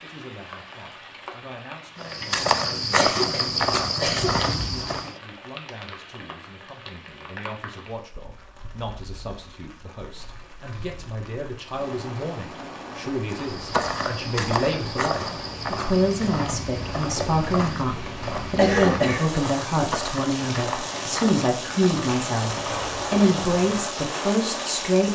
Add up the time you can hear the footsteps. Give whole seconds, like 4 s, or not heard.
14 s.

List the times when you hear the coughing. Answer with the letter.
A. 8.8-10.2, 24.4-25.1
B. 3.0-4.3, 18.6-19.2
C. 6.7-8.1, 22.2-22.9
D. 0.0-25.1
B.